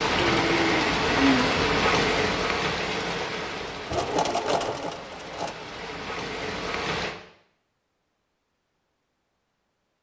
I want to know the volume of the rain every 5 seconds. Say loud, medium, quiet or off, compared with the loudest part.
loud, medium.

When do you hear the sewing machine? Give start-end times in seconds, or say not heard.
3.9-5.5.